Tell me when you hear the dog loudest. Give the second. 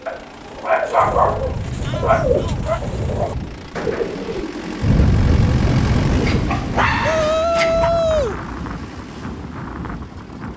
1 s.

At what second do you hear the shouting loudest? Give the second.
8 s.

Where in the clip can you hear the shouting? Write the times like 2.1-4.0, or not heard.
1.8-2.6, 7.0-8.4.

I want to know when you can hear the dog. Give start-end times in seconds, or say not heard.
0.1-2.8, 6.2-7.9.